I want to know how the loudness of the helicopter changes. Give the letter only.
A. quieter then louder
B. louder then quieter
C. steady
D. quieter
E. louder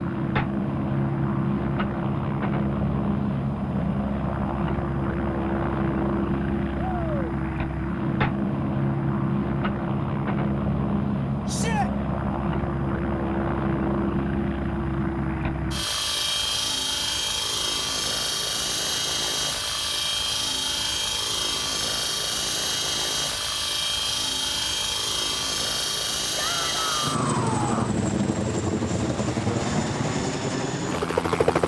C.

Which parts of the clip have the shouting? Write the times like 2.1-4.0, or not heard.
6.8-7.2, 11.4-11.9, 26.4-28.0.